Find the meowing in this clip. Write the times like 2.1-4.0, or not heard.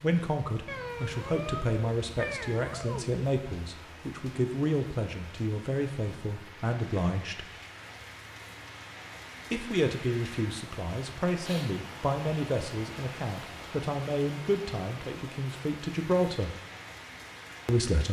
0.7-3.2.